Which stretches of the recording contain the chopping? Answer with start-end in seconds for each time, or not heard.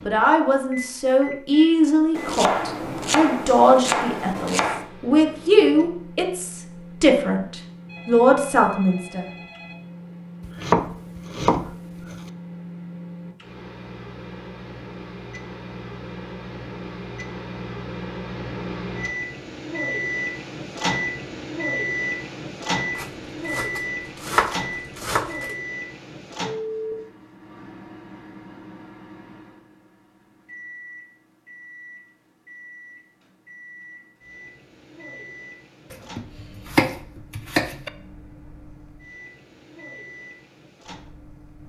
2.1-4.8, 10.4-12.2, 22.9-25.5, 35.9-37.9.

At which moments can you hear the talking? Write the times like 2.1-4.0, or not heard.
0.1-9.2.